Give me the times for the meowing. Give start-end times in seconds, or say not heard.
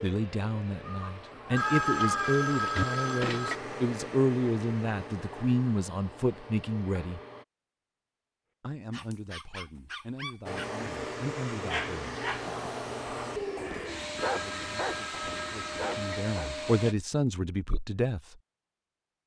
0.8-2.9.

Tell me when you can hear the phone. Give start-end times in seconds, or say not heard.
1.6-3.6, 14.2-16.2.